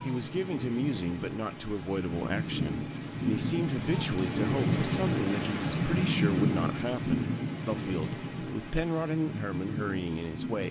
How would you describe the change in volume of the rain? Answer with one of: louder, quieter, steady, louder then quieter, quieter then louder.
louder then quieter.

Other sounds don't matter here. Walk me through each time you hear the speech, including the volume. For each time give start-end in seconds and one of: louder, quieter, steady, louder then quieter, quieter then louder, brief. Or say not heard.
0.0-10.6 steady.